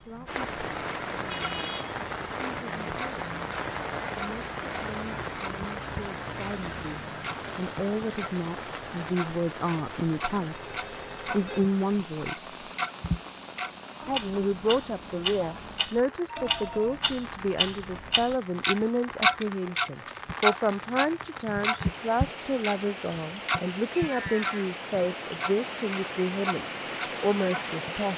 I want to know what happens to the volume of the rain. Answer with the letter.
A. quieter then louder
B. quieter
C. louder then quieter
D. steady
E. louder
A.